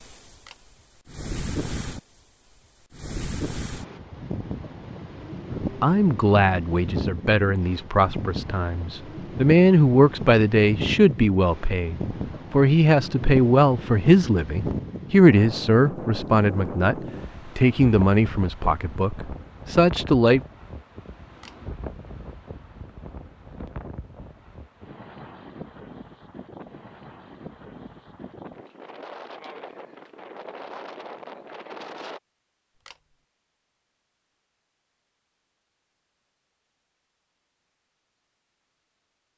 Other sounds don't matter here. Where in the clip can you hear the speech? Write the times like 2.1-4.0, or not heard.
5.8-20.4.